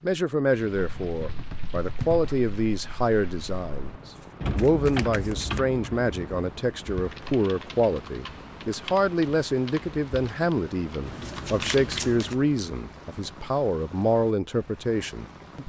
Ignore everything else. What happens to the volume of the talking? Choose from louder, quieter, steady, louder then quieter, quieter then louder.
steady.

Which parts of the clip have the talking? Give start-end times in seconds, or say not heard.
0.0-15.6.